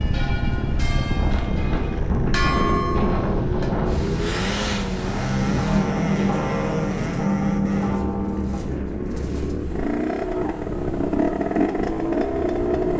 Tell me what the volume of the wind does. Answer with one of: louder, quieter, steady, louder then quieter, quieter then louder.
quieter.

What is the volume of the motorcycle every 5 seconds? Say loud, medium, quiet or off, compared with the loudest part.
medium, medium, loud.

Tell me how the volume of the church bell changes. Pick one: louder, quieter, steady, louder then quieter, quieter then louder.
louder.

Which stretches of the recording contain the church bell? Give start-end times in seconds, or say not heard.
0.0-3.7, 5.1-8.7.